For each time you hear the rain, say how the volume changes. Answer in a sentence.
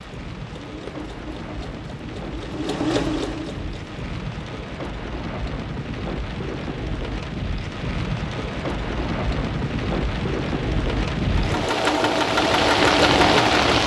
The rain can be heard from 0.0 to 13.8 s, getting louder.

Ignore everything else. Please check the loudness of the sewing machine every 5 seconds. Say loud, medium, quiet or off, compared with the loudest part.
medium, off, loud.